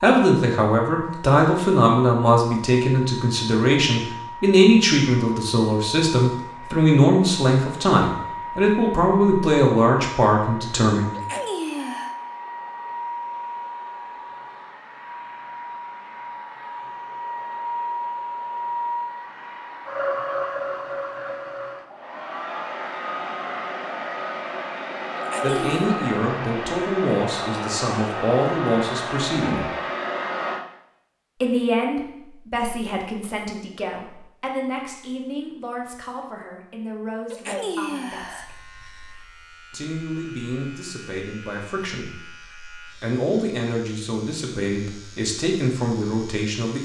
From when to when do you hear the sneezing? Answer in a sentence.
You can hear the sneezing from 11.1 to 12.2 s, from 25.1 to 25.9 s and from 37.3 to 38.5 s.